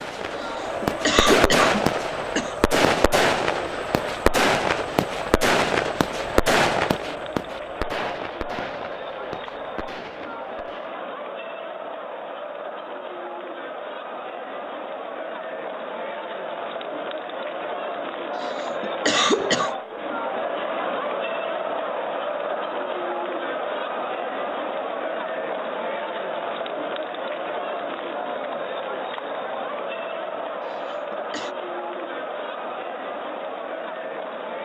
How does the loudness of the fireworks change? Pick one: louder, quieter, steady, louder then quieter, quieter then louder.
quieter.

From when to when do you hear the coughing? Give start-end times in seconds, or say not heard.
0.3-2.5, 18.4-19.7, 30.6-31.6.